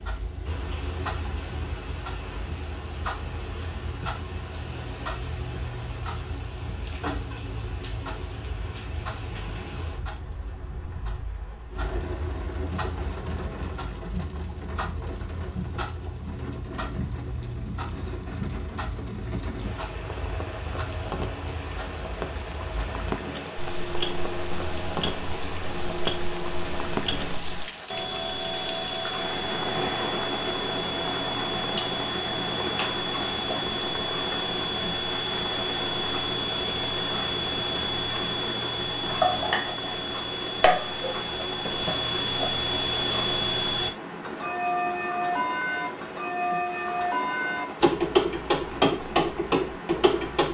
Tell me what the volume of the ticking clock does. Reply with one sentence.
The loudness of the ticking clock goes up.